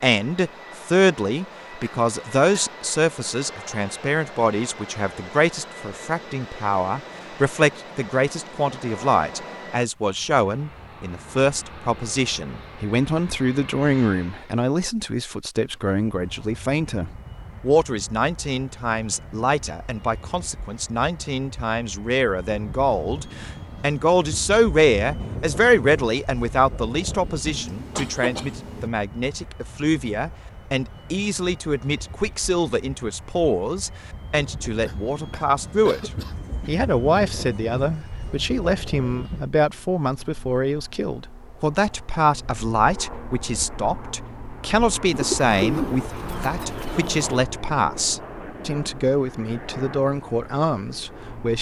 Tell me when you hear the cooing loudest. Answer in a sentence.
The volume of the cooing peaks at 46 seconds.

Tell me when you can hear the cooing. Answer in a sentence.
The cooing can be heard from 45.1 to 47.3 s.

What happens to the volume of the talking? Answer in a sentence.
The loudness of the talking stays about the same.